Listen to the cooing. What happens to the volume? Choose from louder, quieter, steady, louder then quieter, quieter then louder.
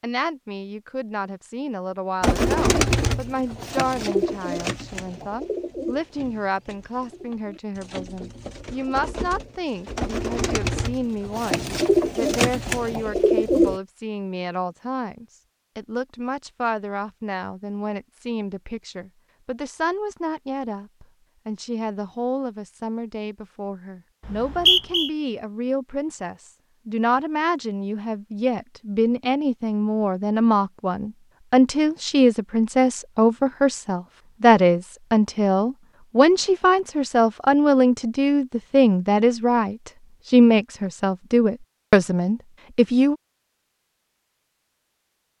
quieter then louder.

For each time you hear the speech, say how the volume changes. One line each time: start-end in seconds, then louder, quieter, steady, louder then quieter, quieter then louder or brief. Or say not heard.
0.0-43.1 louder.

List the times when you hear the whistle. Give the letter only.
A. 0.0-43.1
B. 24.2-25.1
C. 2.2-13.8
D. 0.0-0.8
B.